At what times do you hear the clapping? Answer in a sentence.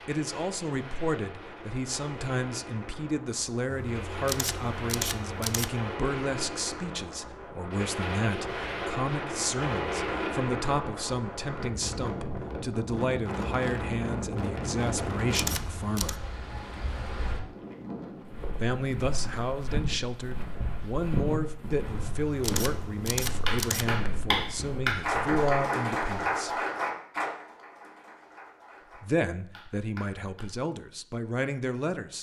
The clapping can be heard from 23.4 to 30.5 s.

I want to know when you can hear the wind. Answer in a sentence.
You can hear the wind from 0.0 to 18.4 s.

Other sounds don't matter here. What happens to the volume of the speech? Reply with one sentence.
The loudness of the speech stays about the same.